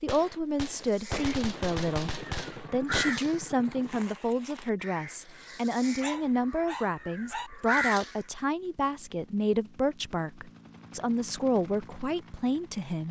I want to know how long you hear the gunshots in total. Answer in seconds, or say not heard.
3 s.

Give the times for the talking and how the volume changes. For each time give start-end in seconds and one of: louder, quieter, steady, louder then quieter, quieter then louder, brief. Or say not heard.
0.0-13.0 steady.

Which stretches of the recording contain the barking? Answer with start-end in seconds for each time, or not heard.
6.0-7.5.